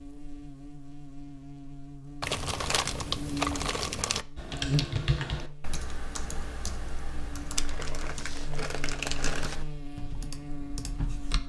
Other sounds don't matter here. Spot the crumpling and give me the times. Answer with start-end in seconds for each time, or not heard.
2.2-4.2, 7.5-9.6.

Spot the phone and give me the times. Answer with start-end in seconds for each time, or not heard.
not heard.